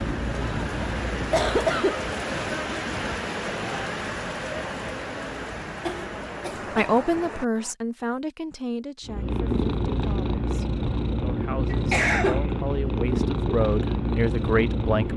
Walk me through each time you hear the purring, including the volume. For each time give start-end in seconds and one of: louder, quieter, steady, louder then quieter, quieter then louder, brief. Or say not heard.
0.0-1.8 brief
9.0-15.1 steady.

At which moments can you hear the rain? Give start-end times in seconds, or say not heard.
0.0-7.8.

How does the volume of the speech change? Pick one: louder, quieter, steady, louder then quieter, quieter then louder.
quieter then louder.